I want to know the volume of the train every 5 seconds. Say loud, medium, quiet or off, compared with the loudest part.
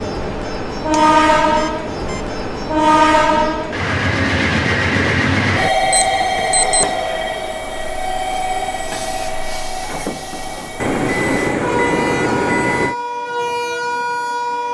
loud, loud, medium.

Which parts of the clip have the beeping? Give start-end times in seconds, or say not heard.
0.9-2.4, 5.8-7.0, 10.8-12.9.